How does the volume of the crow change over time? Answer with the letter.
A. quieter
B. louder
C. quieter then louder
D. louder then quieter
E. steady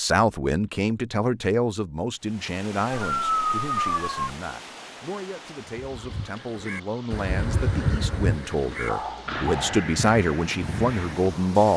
D.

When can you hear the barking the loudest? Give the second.
3 s.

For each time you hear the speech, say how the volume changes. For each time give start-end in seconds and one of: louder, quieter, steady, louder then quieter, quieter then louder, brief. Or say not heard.
0.0-11.7 quieter then louder.